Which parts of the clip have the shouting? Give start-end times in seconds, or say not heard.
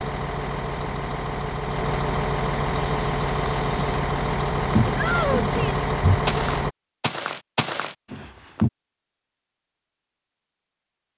5.0-5.8.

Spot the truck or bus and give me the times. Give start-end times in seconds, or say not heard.
0.0-6.8.